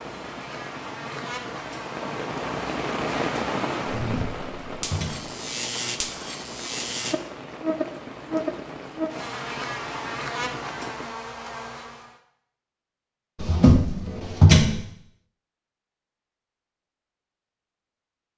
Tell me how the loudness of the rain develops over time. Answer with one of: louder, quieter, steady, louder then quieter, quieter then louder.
louder then quieter.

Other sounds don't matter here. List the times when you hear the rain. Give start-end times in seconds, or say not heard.
0.0-11.1.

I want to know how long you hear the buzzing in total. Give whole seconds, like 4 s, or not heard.
12 s.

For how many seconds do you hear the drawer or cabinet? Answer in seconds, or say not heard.
3 s.